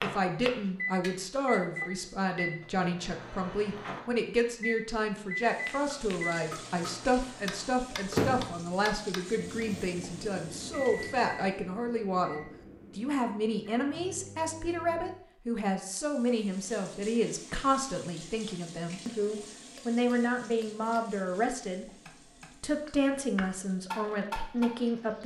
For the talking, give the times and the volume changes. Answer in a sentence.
The talking can be heard from 0.0 to 21.9 s, at a steady volume; and briefly from 22.6 to 25.2 s.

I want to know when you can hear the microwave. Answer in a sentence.
You can hear the microwave from 0.0 to 15.2 s.